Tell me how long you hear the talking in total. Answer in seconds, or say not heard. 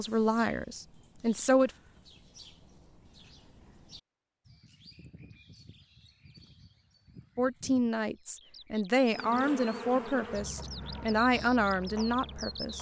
7 s.